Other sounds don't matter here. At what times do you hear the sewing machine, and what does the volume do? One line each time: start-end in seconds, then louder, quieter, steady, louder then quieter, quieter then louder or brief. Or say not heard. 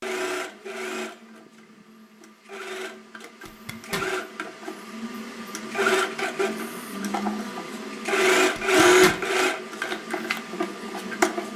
0.0-11.5 louder.